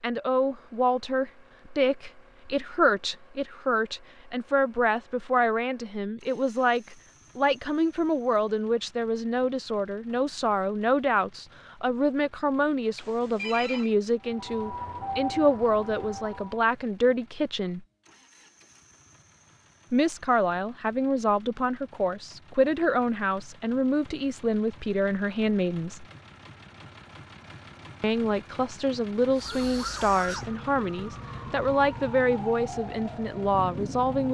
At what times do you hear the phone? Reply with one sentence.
The phone can be heard from 12.9 to 13.9 s.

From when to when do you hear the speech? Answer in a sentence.
You can hear the speech from 0.0 to 17.9 s, from 19.9 to 26.1 s and from 28.0 to 34.2 s.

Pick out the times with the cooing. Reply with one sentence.
You can't hear the cooing here.